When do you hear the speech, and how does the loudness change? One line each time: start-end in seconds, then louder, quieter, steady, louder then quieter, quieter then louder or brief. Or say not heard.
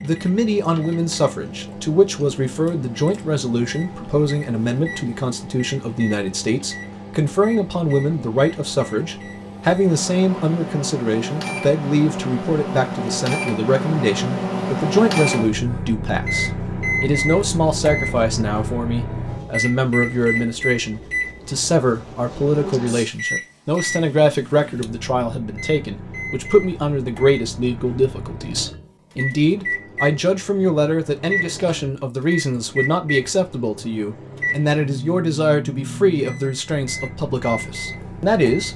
0.0-38.7 steady.